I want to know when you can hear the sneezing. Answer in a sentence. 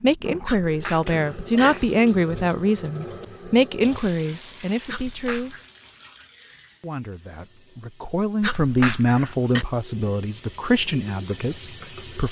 The sneezing can be heard from 0.5 to 1.9 s, from 4.8 to 5.7 s and from 8.4 to 9.7 s.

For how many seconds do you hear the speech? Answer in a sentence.
The speech can be heard for 11 seconds in total.